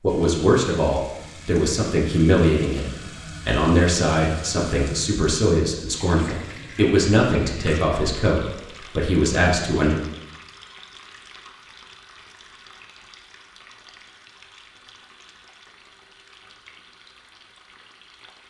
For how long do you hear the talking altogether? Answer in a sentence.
The talking can be heard for 10 seconds in total.